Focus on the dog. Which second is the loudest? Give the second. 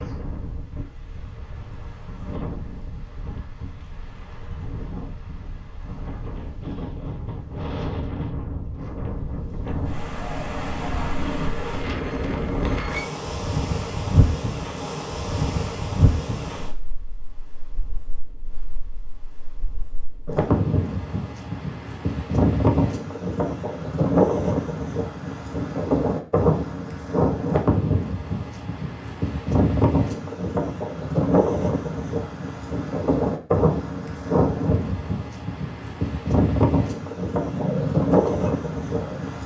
38 s.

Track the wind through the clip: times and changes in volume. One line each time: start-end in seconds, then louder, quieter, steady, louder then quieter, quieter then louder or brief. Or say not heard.
0.0-39.4 louder.